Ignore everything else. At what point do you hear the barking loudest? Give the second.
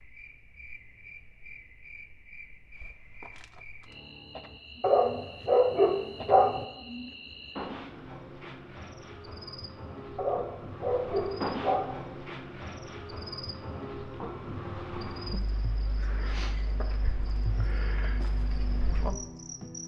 6 s.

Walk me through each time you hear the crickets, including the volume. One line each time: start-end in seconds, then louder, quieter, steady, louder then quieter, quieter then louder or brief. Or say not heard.
0.0-19.8 louder.